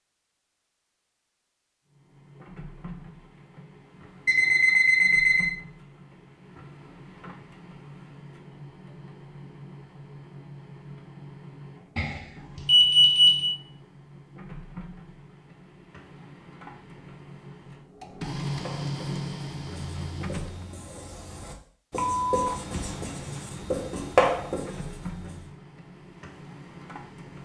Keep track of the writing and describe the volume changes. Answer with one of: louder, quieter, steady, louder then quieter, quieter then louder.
louder.